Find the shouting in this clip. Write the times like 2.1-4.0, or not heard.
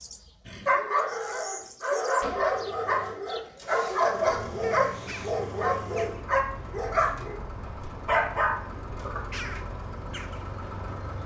not heard.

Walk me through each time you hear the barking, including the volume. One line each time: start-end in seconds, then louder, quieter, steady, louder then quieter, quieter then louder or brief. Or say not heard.
0.5-7.4 steady
8.1-9.2 brief.